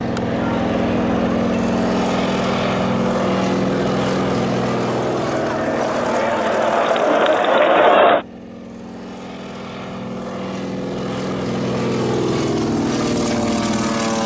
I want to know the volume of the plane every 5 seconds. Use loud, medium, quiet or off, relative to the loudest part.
loud, medium, loud.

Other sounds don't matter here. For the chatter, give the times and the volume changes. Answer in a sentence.
The chatter can be heard from 0.2 to 8.2 s, getting louder.